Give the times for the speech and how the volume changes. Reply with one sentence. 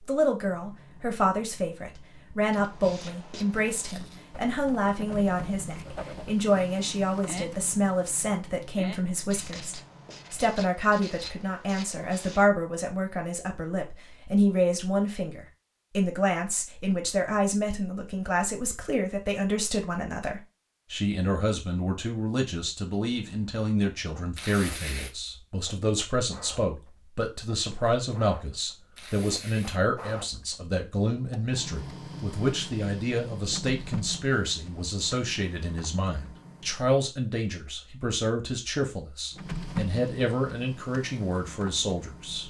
You can hear the speech from 0.1 to 42.4 s, at a steady volume.